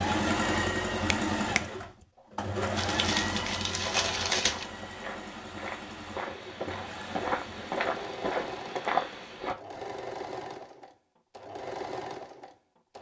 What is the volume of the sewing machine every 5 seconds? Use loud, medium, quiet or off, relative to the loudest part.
loud, medium, medium.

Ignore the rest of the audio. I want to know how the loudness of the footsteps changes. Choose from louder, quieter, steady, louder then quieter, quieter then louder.
louder.